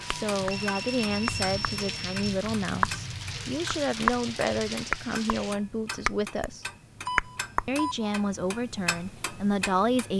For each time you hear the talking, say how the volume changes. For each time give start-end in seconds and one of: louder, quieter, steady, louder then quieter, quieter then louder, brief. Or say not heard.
0.0-6.7 steady
7.7-10.1 brief.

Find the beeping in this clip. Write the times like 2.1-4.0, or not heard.
0.5-2.3, 7.0-8.1.